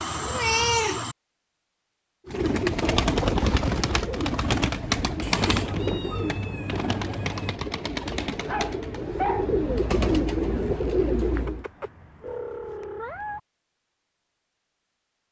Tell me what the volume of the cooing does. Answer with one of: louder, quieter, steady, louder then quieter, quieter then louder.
quieter then louder.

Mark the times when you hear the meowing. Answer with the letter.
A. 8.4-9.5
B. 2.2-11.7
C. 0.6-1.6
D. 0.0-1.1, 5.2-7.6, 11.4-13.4
D.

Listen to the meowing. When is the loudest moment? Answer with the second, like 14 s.
1 s.